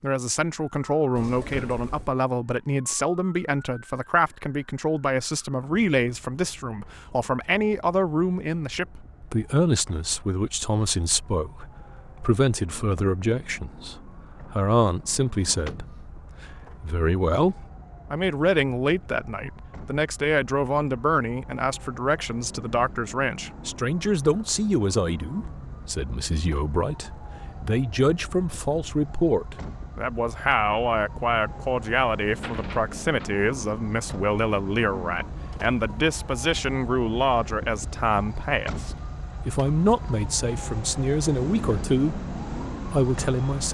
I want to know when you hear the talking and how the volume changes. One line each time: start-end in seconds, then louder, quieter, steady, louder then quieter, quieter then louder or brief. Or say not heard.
0.0-43.6 steady.